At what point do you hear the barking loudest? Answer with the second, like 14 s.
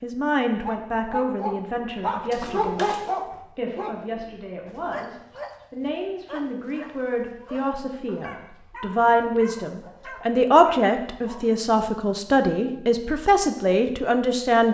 3 s.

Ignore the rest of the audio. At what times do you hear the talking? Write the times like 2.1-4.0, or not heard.
0.0-14.6.